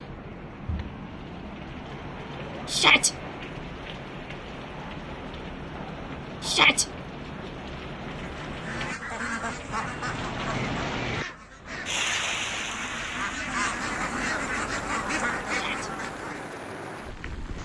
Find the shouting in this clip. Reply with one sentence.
The shouting can be heard from 2.6 to 3.1 s, from 6.4 to 6.8 s and from 15.4 to 15.9 s.